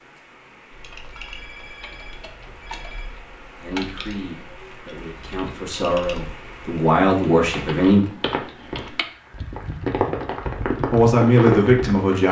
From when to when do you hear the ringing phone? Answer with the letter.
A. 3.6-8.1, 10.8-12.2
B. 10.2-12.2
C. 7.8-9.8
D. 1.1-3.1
D.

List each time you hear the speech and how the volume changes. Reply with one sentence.
The speech can be heard from 3.6 to 8.1 s, getting louder; and briefly from 10.8 to 12.2 s.